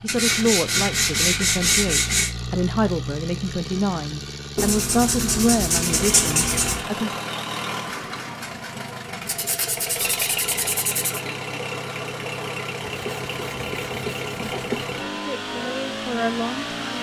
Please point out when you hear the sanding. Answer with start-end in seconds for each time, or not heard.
0.1-2.3, 4.5-6.8, 9.2-11.2, 12.8-14.9.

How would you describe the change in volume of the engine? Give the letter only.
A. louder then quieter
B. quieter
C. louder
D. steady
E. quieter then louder
D.